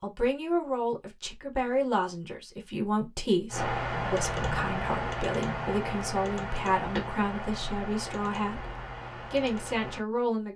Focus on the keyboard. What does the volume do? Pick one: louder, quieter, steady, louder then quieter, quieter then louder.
quieter.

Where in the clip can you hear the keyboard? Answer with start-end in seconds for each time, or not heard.
3.5-10.0.